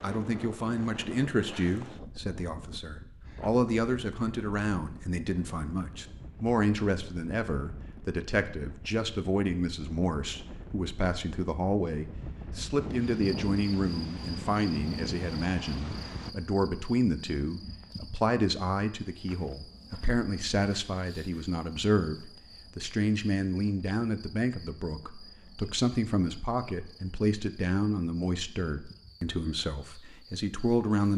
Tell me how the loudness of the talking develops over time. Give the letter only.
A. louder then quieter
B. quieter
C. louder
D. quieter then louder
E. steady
E.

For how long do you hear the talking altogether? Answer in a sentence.
You can hear the talking for 31 seconds altogether.